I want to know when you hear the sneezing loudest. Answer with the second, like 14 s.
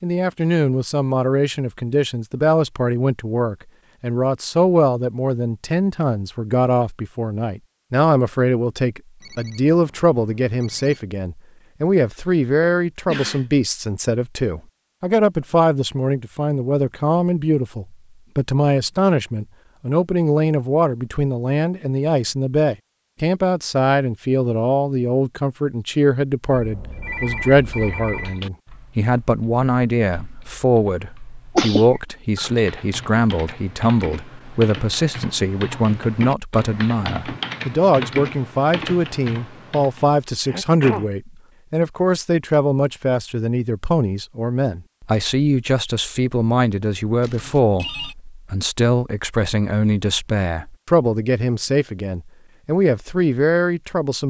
32 s.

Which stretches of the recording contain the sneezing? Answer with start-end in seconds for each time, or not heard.
12.1-13.4, 31.6-32.6, 40.5-41.0.